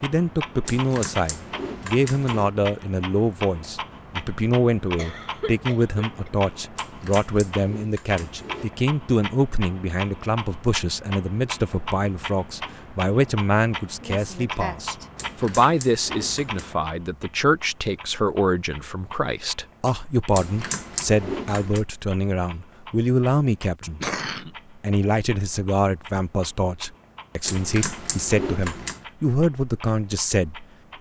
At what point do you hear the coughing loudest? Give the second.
24 s.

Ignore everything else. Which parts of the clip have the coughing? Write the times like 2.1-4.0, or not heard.
5.0-6.3, 14.0-15.1, 23.8-24.5.